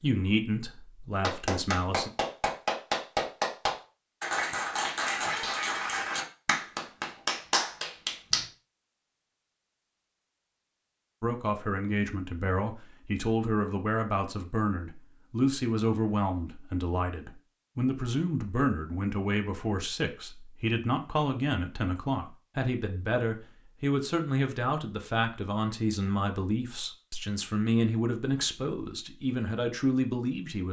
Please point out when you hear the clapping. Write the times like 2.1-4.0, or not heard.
1.2-8.4.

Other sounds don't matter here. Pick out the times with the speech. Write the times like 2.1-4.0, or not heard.
0.0-2.1, 11.2-30.6.